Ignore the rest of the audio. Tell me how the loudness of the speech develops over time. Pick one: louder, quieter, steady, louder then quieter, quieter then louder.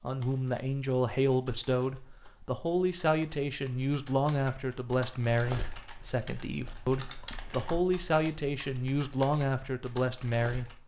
steady.